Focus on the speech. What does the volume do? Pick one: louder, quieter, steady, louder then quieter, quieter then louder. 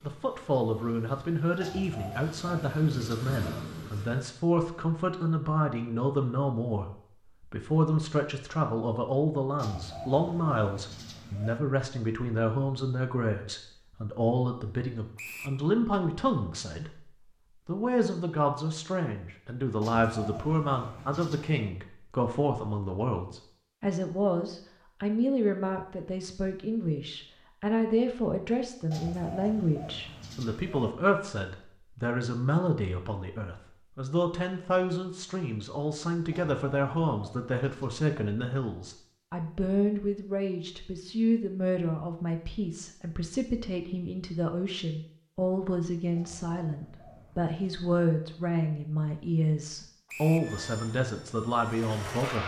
steady.